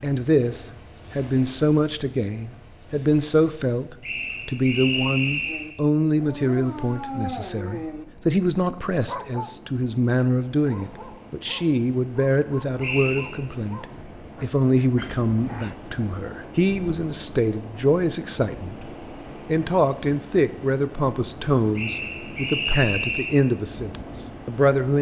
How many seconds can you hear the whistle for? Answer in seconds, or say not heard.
4 s.